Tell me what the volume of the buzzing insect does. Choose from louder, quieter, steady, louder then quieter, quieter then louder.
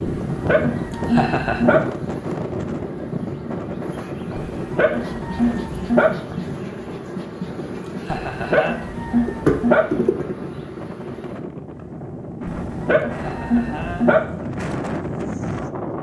louder.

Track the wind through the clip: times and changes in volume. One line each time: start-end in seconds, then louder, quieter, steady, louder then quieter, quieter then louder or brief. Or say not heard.
0.0-15.9 quieter then louder.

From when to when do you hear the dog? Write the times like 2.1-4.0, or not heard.
0.1-1.9, 4.3-6.2, 8.2-9.9, 12.4-14.2.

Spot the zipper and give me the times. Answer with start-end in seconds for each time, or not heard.
not heard.